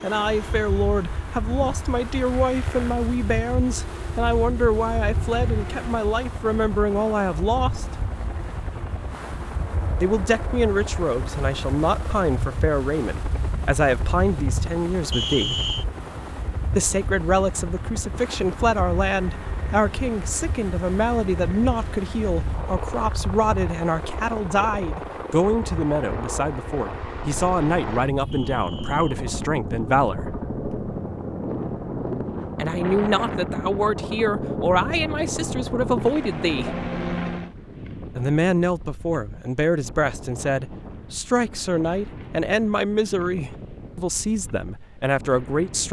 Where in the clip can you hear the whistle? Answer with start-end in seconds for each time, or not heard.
15.1-15.8, 28.3-29.1.